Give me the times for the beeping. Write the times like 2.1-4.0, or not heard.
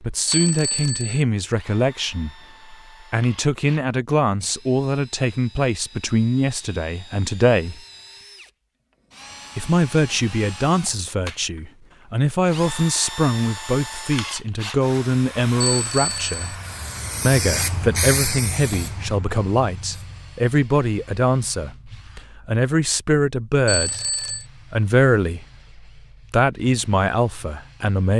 0.2-1.2, 15.6-16.4, 23.6-24.4.